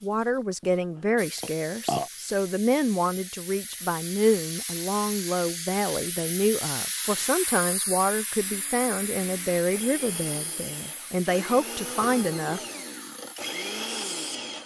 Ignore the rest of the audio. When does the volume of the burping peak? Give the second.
2 s.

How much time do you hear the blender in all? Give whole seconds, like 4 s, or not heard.
6 s.